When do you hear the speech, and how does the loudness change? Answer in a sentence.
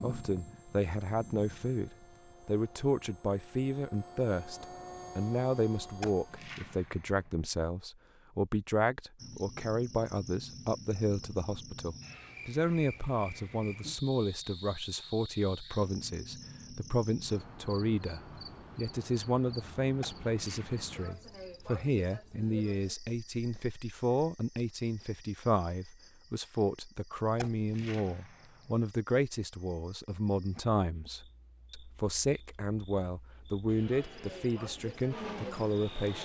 The speech can be heard from 0.0 to 36.2 s, at a steady volume.